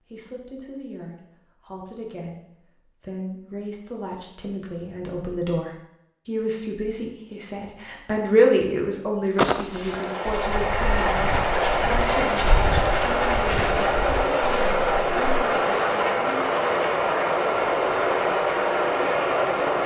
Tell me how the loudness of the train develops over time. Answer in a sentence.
The loudness of the train stays about the same.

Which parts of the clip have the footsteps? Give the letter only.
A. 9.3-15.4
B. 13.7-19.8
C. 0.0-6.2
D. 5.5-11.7
A.